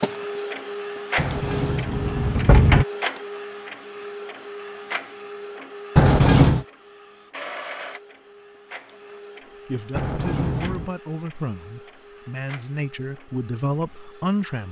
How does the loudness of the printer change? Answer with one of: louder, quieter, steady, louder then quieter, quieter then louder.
quieter.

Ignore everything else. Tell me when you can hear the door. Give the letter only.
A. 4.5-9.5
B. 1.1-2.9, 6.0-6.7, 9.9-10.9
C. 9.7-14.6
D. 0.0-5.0
B.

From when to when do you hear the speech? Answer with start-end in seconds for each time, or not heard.
9.7-14.6.